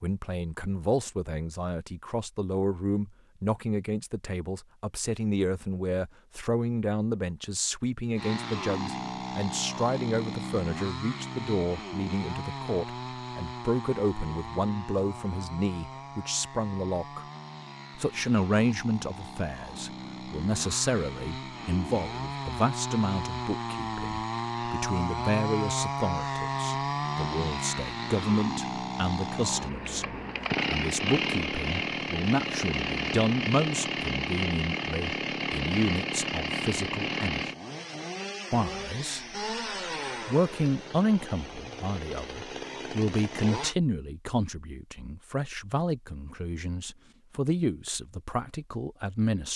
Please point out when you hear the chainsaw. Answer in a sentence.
You can hear the chainsaw from 8.2 to 43.8 s.